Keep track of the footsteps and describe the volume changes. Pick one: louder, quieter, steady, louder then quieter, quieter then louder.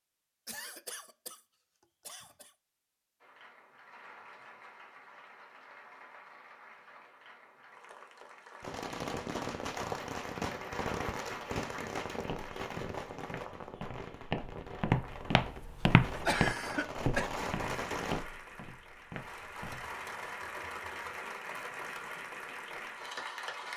louder then quieter.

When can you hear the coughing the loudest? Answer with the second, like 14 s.
16 s.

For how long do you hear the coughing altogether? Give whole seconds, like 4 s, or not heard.
3 s.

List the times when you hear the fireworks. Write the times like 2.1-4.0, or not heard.
8.6-18.2.